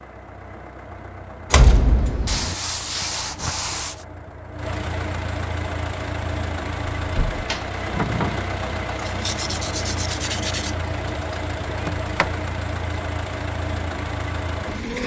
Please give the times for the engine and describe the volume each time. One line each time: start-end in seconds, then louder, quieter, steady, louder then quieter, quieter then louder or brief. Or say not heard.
0.0-15.0 louder.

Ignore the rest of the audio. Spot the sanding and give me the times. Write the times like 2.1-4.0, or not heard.
2.2-4.0, 9.0-10.8.